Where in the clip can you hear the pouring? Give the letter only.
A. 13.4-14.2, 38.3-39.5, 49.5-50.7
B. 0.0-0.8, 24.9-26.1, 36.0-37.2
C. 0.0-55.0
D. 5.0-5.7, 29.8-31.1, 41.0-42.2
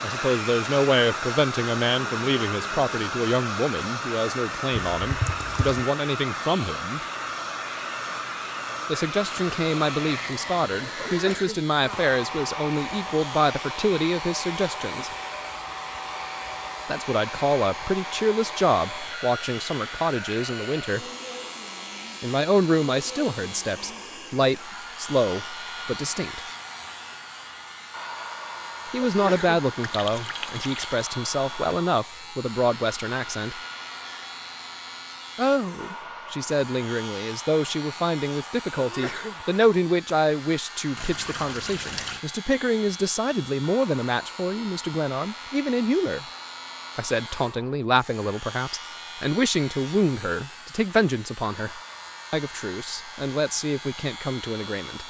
D.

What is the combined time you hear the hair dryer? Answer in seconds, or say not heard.
55 s.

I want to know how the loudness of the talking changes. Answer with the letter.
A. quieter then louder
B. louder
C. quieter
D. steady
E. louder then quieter
D.